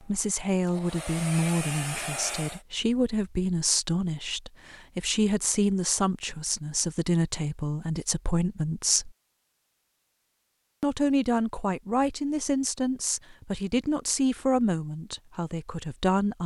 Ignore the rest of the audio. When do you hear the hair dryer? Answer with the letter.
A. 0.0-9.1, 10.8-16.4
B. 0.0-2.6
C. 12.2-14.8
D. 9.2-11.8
B.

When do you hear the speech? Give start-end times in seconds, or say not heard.
0.0-9.1, 10.8-16.4.